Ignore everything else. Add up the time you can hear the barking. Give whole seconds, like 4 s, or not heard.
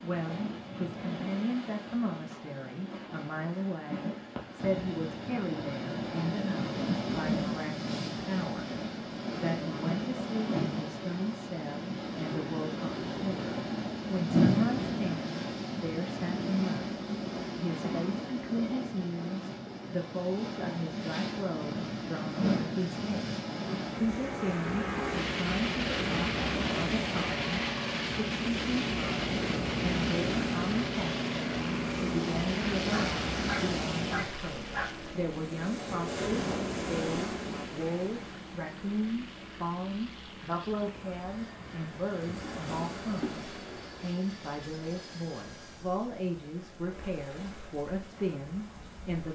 2 s.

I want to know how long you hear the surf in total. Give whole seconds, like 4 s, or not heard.
49 s.